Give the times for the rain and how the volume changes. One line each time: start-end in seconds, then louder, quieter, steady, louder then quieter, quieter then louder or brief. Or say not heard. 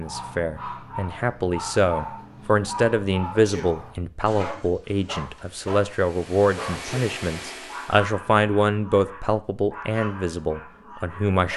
not heard.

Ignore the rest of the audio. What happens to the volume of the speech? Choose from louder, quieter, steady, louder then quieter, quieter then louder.
steady.